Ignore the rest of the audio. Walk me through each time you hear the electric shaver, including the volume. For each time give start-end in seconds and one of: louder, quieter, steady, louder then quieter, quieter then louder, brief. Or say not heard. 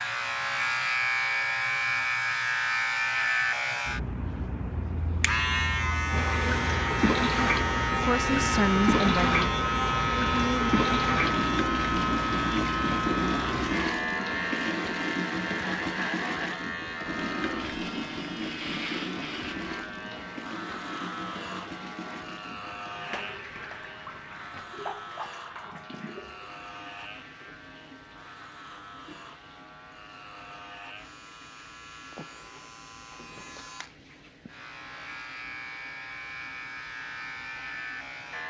0.0-38.4 quieter.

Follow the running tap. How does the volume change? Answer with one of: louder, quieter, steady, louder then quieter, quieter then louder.
quieter.